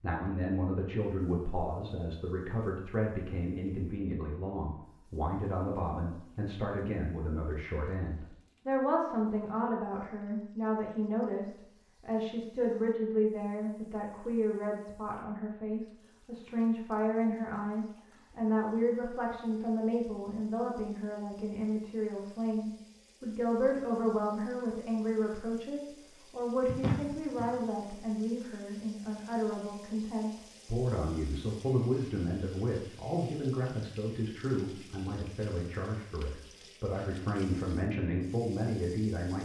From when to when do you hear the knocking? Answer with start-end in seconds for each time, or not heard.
26.6-27.5.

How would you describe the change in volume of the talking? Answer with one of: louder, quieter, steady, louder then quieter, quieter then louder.
steady.